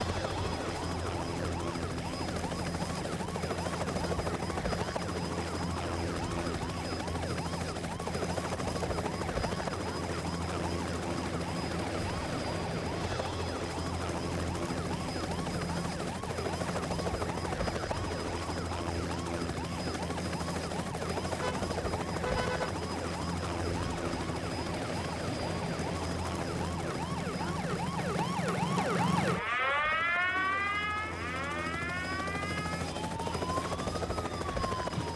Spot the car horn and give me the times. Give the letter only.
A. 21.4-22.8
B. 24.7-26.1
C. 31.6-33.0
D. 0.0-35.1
A.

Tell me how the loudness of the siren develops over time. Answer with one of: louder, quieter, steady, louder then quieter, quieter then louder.
louder.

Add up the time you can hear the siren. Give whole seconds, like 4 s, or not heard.
35 s.